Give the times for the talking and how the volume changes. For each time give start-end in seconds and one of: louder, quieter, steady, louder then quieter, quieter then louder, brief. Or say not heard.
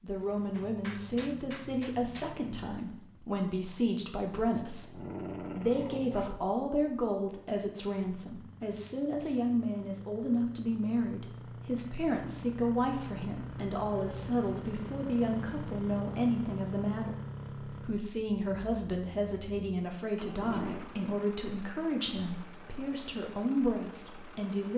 0.0-24.7 steady.